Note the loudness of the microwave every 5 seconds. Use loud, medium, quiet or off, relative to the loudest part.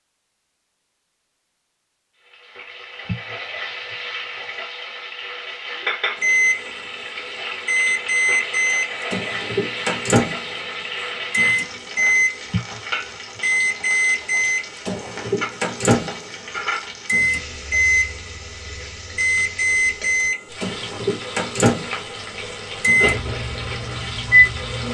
off, loud, loud, loud, loud.